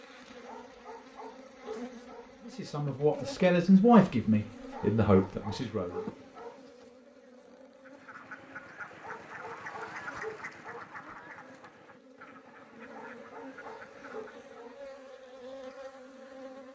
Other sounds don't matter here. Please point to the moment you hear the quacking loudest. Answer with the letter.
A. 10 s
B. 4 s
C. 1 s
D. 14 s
A.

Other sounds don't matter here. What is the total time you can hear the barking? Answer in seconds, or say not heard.
8 s.